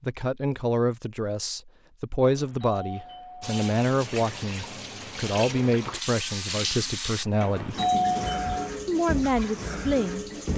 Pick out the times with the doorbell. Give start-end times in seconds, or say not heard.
2.2-3.6, 7.4-8.6.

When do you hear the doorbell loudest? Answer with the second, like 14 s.
8 s.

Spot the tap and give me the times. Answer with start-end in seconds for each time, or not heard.
3.4-10.5.